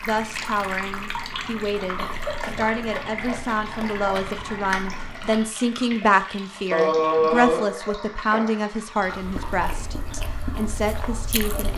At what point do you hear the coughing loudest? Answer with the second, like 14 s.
7 s.